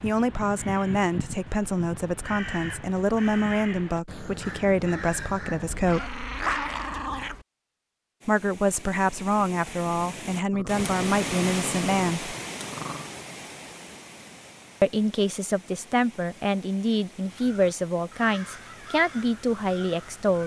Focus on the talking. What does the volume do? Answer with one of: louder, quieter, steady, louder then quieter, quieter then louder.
steady.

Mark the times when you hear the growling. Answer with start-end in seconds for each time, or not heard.
5.7-7.5, 10.5-13.1.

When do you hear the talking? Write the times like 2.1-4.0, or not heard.
0.0-6.2, 8.2-12.3, 14.8-20.4.